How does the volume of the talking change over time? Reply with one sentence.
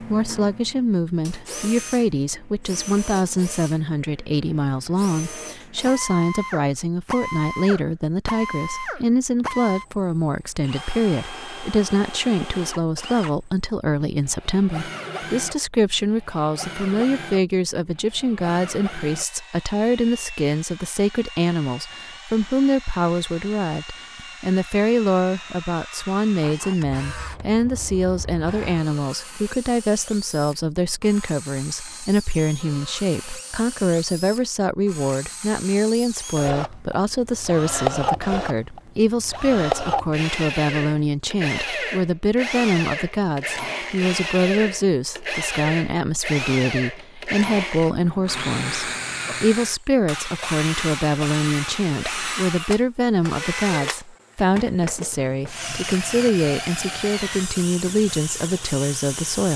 The volume of the talking stays about the same.